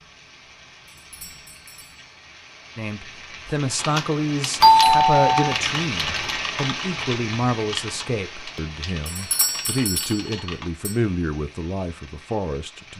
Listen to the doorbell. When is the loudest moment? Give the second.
5 s.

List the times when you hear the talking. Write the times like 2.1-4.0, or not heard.
2.8-12.9.